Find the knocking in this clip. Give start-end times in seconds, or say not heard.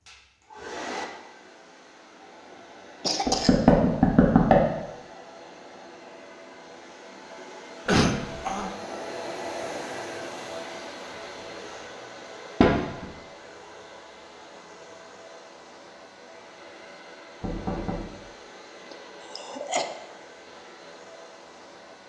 3.2-4.6, 12.6-13.1, 17.4-18.1.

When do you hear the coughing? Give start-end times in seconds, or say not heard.
3.0-3.6, 7.8-8.7, 18.9-19.9.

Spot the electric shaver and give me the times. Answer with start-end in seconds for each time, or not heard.
not heard.